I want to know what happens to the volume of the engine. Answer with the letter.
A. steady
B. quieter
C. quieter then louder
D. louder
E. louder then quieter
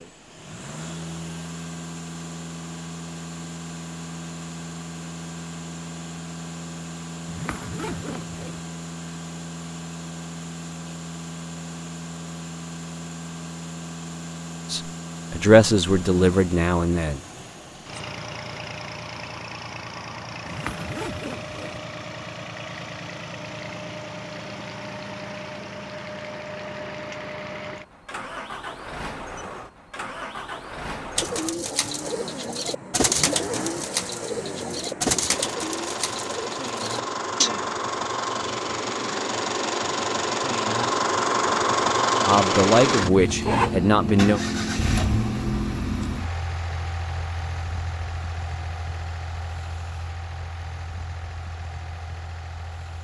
D.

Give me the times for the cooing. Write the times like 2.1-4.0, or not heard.
31.1-37.7.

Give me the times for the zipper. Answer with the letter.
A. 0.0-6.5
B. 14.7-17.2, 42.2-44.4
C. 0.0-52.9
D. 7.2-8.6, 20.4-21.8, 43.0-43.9
D.